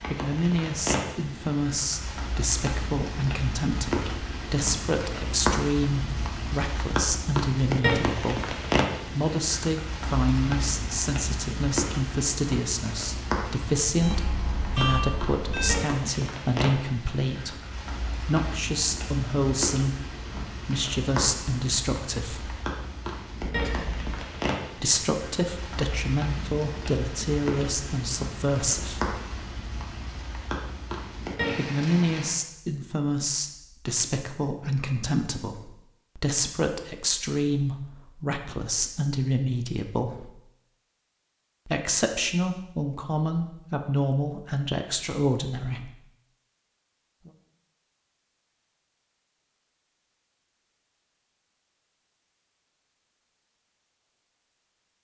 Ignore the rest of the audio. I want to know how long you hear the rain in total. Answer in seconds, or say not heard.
32 s.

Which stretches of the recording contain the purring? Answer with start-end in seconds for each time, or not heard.
not heard.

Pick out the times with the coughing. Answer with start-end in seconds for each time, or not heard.
23.4-24.3.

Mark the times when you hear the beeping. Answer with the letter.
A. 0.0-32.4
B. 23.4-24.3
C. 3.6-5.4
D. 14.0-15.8
D.